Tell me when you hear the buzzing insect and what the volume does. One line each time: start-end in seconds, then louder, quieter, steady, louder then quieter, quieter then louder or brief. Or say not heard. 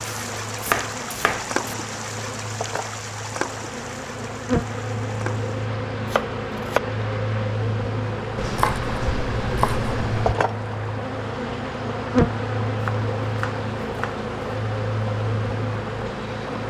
0.0-16.6 louder.